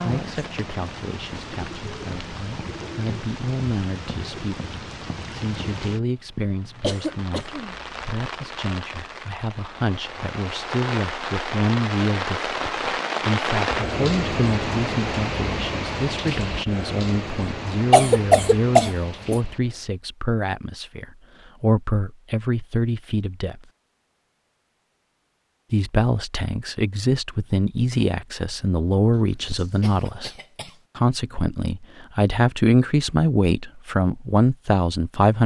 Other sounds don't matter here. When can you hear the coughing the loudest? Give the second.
18 s.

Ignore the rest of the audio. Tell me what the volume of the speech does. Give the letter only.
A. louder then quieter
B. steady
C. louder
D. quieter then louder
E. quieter
C.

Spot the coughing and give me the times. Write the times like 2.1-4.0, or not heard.
6.8-7.8, 17.9-19.4, 29.2-30.8.